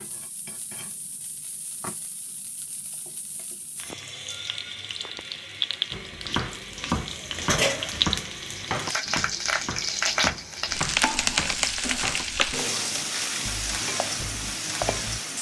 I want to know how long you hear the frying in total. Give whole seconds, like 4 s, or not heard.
15 s.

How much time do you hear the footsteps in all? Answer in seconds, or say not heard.
not heard.